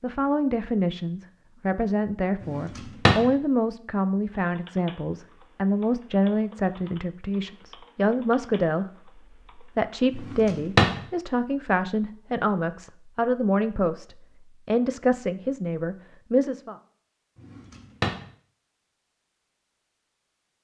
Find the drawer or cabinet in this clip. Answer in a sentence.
You can hear the drawer or cabinet from 2.4 to 3.3 s, from 10.2 to 11.0 s and from 17.4 to 18.2 s.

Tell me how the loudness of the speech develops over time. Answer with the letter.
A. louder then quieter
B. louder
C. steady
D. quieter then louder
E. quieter
C.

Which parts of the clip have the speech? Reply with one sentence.
The speech can be heard from 0.0 to 16.8 s.